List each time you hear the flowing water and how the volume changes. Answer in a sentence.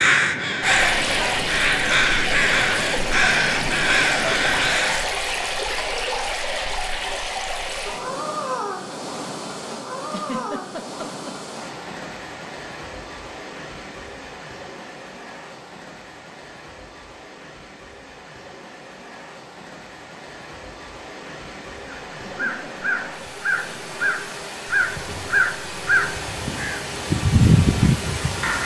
You can hear the flowing water from 0.0 to 28.6 s, getting quieter then louder.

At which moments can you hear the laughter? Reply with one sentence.
The laughter can be heard from 10.1 to 11.3 s and from 22.2 to 22.8 s.